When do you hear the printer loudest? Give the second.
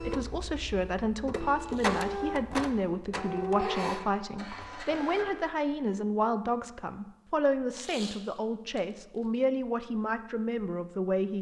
2 s.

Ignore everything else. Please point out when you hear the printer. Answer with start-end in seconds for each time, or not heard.
0.0-5.5.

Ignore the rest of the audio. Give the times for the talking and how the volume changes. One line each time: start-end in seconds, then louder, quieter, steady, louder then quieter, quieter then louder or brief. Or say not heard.
0.0-11.3 steady.